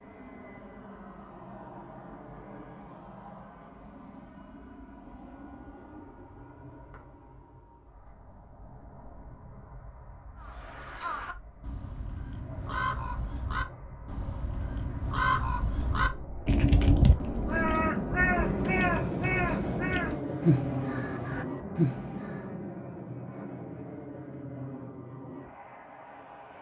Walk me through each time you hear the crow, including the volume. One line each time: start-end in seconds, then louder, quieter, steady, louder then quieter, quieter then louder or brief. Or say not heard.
10.3-22.4 louder.